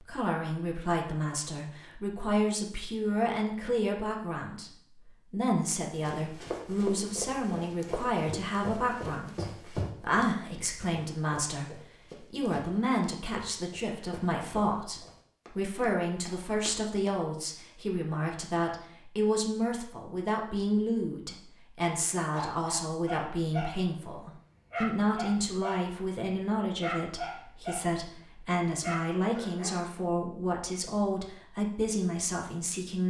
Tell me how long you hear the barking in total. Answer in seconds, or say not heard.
5 s.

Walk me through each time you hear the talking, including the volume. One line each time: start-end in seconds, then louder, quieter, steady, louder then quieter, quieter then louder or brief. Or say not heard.
0.0-33.0 steady.